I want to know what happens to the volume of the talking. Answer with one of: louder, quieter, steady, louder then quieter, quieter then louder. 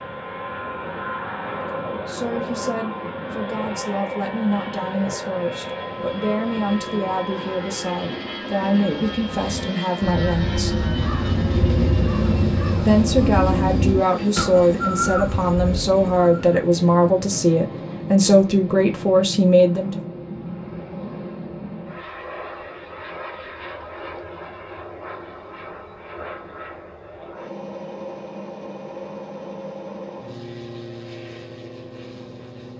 louder.